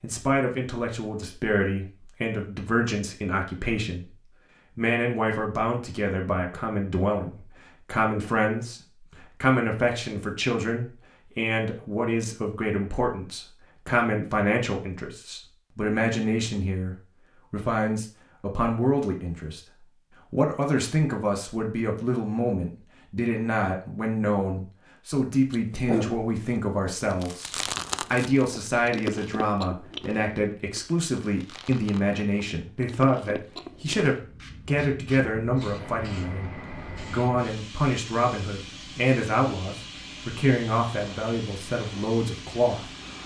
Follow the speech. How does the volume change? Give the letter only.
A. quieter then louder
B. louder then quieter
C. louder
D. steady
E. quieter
D.